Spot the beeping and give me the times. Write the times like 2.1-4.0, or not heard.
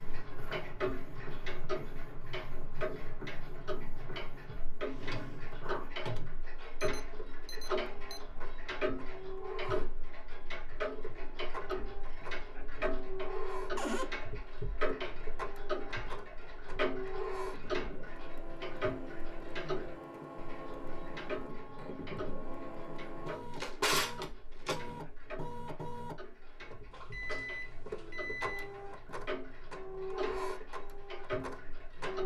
6.8-8.2, 26.9-29.0.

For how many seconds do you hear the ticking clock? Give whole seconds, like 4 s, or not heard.
32 s.